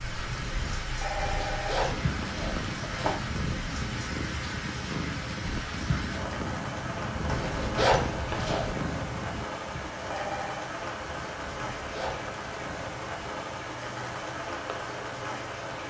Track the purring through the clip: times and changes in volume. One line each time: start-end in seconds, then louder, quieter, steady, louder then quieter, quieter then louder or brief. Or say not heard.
0.0-15.8 quieter.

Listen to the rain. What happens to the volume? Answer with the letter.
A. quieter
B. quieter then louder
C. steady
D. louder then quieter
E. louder
C.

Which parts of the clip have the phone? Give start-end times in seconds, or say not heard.
1.0-1.9, 10.1-10.7.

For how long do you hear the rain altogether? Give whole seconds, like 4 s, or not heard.
16 s.